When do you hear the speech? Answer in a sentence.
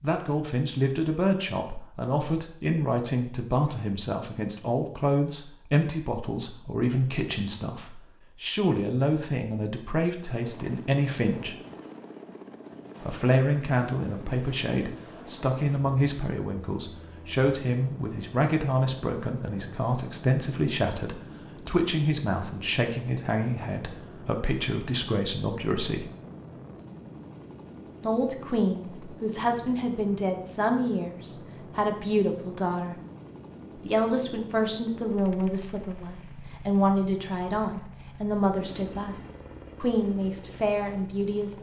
You can hear the speech from 0.0 to 11.6 s, from 13.0 to 26.1 s, from 28.0 to 33.0 s, from 33.8 to 39.1 s and from 39.8 to 41.5 s.